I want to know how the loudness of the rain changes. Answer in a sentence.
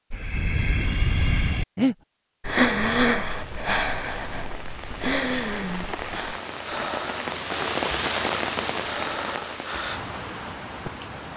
The volume of the rain goes up, then down.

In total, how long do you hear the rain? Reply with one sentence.
You can hear the rain for 8 seconds altogether.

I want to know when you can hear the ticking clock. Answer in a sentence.
You can't hear the ticking clock here.